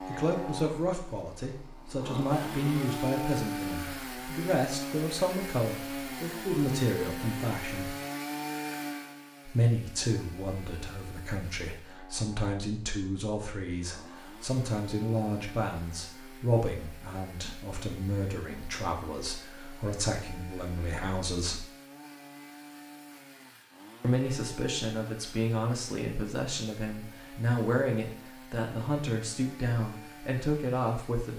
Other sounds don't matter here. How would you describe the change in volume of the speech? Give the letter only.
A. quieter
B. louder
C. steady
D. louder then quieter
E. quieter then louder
C.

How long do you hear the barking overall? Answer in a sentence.
The barking can't be heard in this clip.